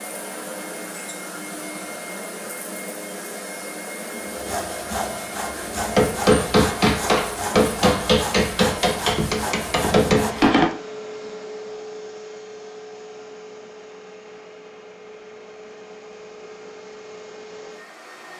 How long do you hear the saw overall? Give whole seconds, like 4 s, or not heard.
6 s.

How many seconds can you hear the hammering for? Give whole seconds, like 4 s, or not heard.
5 s.